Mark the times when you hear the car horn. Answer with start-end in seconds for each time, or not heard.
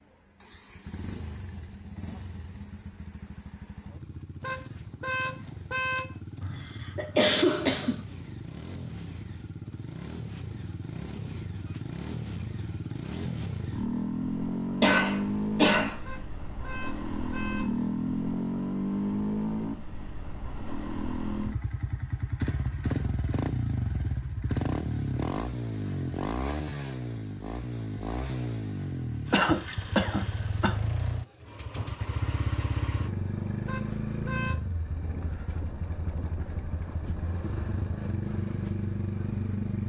4.4-6.2, 16.1-17.8, 33.6-34.6.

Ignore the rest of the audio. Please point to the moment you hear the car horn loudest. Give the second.
6 s.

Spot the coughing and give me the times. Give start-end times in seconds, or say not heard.
6.4-8.1, 14.8-16.1, 29.3-30.8.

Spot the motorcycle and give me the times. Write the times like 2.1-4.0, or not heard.
0.0-39.8.